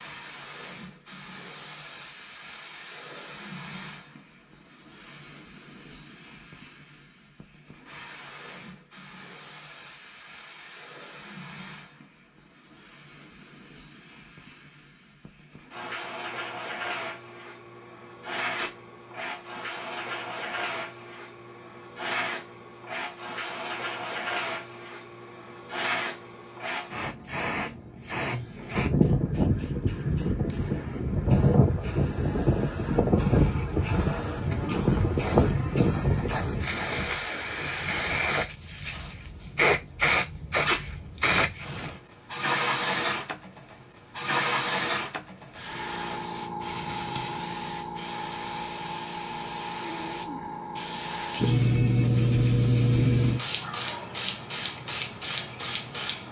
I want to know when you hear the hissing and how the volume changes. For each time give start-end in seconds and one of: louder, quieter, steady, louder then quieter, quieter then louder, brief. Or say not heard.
0.0-56.2 louder.